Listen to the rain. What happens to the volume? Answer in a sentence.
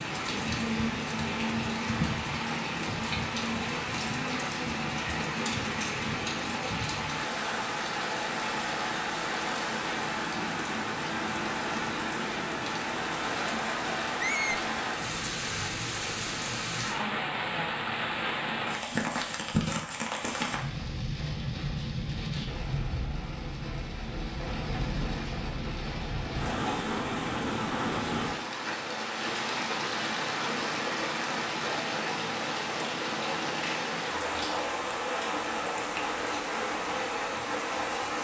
The loudness of the rain stays about the same.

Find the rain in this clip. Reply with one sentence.
The rain can be heard from 0.0 to 38.1 s.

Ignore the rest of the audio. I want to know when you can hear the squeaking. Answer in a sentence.
You can hear the squeaking from 14.2 to 14.6 s.